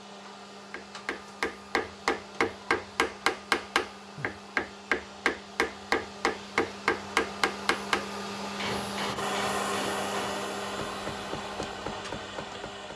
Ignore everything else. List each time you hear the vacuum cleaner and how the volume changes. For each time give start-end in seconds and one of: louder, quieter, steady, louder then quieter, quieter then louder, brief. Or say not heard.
0.0-12.9 louder.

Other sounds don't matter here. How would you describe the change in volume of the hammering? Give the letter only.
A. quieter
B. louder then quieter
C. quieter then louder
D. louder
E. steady
A.